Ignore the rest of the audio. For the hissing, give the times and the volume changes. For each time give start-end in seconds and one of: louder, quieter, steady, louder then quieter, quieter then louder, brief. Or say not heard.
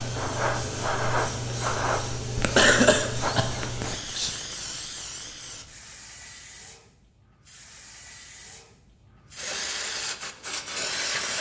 0.0-11.3 quieter then louder.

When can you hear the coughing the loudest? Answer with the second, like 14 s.
3 s.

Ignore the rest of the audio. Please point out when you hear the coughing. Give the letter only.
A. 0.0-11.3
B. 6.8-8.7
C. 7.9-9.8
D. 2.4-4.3
D.